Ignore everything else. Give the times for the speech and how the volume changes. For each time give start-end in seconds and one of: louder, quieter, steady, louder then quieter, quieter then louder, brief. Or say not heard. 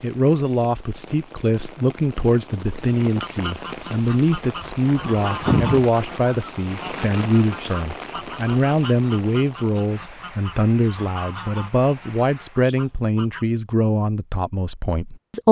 0.0-15.4 steady.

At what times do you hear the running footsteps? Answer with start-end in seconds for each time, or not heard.
not heard.